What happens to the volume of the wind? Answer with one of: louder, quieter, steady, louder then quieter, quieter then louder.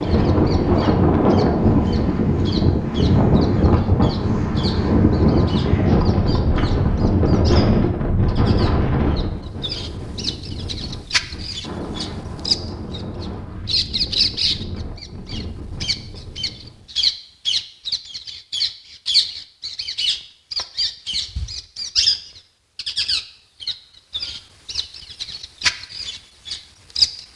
quieter.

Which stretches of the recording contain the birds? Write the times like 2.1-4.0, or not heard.
0.0-27.2.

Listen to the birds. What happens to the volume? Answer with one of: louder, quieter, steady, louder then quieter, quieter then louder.
louder.